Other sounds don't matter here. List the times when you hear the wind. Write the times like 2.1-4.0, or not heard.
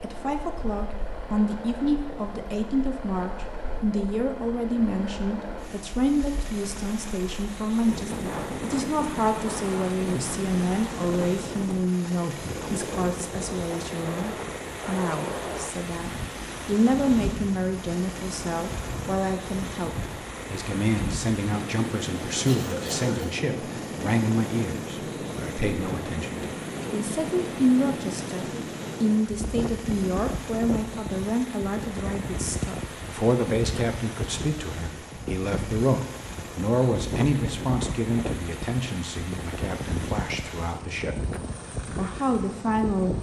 0.0-43.1.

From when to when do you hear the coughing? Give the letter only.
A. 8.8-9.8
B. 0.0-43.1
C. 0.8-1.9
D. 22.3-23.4
D.